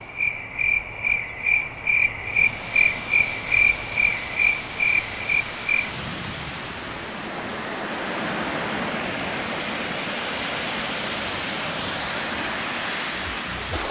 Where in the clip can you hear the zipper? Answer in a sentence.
The zipper can't be heard in this clip.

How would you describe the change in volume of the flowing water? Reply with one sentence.
The loudness of the flowing water goes up.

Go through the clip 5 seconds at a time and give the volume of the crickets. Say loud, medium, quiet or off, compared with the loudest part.
loud, medium, quiet.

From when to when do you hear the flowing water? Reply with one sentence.
The flowing water can be heard from 2.1 to 13.8 s.